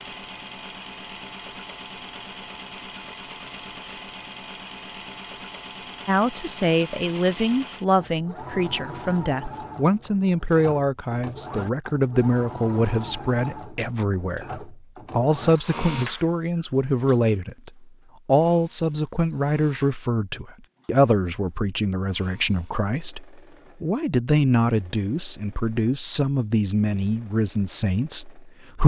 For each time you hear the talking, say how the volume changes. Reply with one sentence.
The talking can be heard from 6.0 to 28.8 s, at a steady volume.